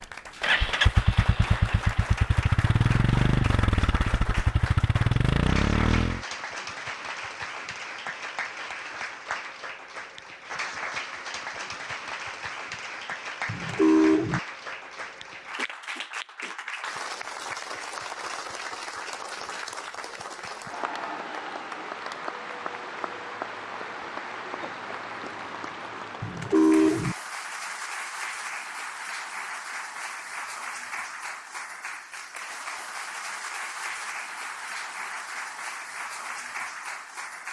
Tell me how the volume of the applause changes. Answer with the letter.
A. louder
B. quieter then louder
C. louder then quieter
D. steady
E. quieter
D.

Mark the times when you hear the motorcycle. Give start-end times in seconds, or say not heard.
0.0-6.2.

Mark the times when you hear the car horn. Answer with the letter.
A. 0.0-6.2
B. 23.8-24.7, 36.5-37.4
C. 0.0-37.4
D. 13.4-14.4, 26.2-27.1
D.